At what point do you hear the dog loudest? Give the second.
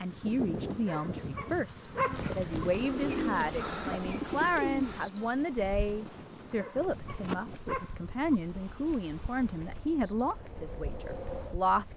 2 s.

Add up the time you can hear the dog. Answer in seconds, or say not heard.
4 s.